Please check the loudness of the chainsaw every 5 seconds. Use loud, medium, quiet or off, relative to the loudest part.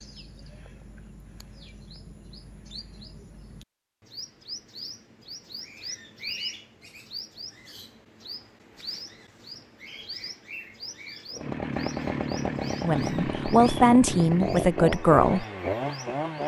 off, off, loud, loud.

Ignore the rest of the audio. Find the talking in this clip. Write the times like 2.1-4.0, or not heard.
12.8-15.4.